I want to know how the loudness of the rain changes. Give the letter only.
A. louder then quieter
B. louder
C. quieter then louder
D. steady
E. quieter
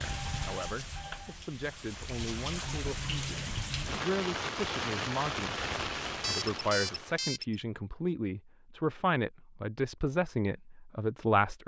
B.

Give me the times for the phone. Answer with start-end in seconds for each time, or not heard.
0.1-1.4, 6.2-7.5.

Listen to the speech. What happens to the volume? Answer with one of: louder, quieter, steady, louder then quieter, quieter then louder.
louder.